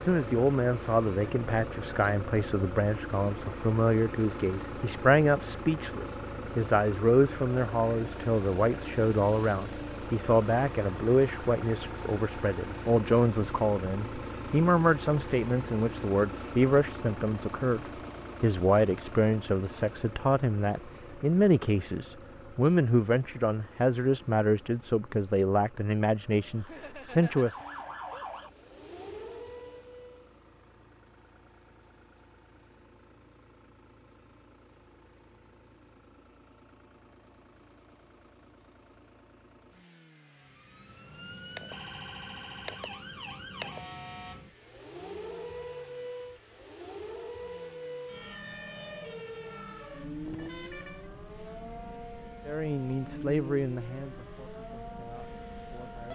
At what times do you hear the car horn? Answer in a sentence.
You can hear the car horn from 50.2 to 51.1 s.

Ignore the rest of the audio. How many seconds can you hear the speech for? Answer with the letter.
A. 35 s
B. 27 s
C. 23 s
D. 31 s
D.